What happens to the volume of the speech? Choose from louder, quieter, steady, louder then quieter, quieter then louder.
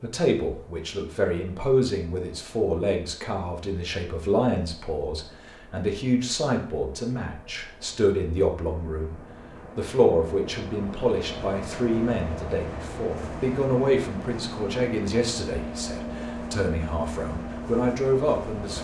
steady.